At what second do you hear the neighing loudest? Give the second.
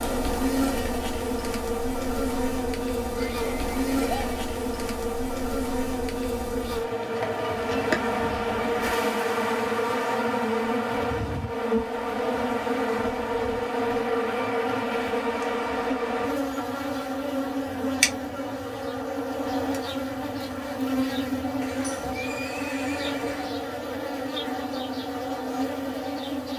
4 s.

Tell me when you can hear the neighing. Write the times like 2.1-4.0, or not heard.
3.1-4.4, 21.6-23.6.